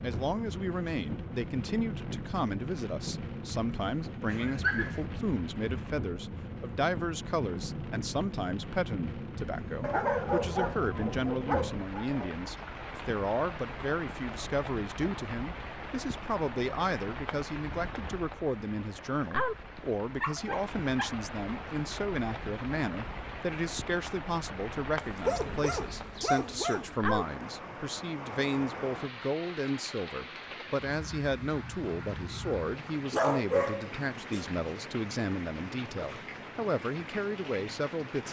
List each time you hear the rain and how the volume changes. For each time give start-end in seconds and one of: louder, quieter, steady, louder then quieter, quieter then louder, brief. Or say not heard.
0.0-38.2 steady.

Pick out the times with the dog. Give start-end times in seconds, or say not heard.
4.3-5.0, 9.8-12.3, 20.2-21.1, 24.9-26.9, 33.1-34.5.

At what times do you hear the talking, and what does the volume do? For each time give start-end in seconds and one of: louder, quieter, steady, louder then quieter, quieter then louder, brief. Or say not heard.
0.0-38.2 steady.